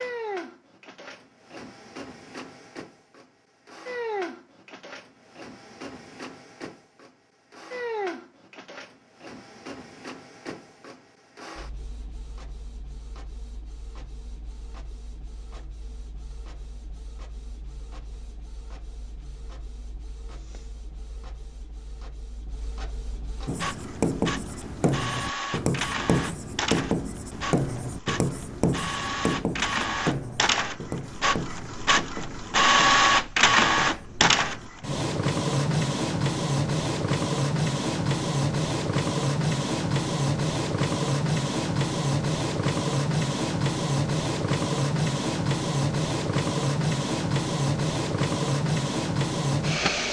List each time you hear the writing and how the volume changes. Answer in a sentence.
You can hear the writing from 23.4 to 34.7 s, getting quieter.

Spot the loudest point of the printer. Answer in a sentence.
The volume of the printer peaks at 33 seconds.